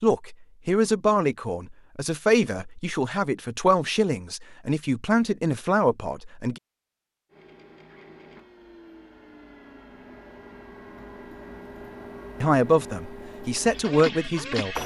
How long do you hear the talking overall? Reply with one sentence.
You can hear the talking for 9 seconds altogether.